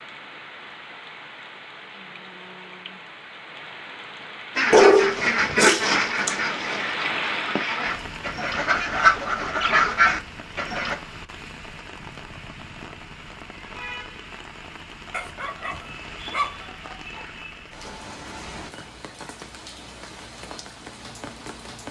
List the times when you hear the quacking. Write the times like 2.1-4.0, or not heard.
4.5-10.9.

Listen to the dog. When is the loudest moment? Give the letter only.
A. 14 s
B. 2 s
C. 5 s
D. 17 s
C.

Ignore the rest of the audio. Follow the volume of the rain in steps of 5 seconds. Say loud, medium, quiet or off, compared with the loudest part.
medium, loud, medium, medium, medium.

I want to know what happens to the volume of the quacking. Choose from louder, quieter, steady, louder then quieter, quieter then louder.
quieter then louder.